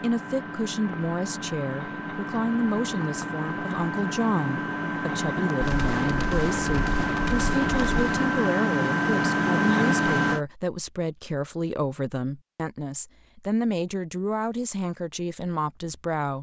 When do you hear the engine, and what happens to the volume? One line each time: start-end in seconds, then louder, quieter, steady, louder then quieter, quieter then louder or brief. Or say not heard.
0.0-10.4 louder.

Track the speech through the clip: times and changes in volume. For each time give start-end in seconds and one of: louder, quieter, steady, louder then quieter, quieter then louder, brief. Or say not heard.
0.0-16.3 steady.